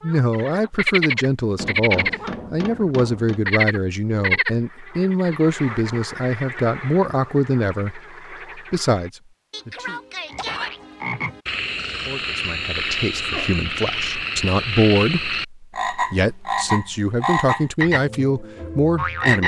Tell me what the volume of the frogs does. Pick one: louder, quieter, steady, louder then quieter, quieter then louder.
quieter then louder.